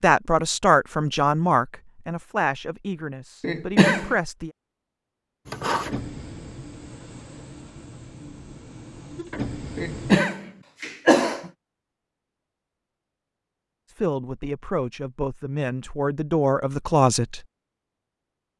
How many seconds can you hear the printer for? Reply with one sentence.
You can hear the printer for 5 seconds altogether.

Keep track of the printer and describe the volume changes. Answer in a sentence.
The volume of the printer goes down, then up.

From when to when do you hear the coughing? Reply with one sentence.
You can hear the coughing from 3.4 to 4.2 s and from 9.8 to 11.5 s.